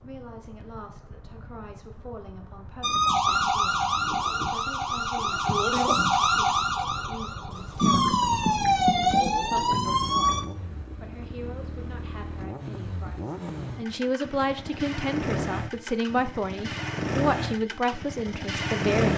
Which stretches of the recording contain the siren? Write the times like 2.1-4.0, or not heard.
2.8-10.4.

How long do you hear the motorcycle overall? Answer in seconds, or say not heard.
19 s.